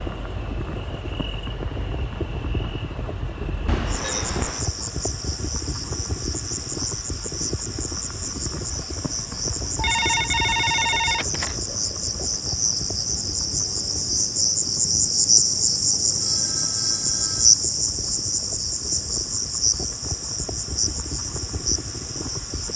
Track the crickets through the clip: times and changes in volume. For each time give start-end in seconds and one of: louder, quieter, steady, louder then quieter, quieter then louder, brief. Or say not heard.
0.0-22.7 louder then quieter.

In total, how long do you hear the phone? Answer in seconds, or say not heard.
4 s.